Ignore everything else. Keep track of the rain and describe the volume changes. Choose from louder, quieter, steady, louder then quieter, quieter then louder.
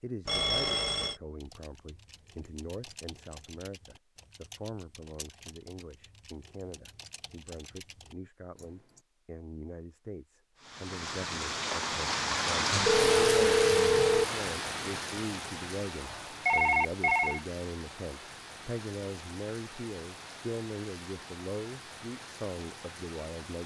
quieter.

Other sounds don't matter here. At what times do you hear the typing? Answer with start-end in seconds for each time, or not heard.
1.4-9.1.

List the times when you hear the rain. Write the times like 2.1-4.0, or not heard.
10.6-23.6.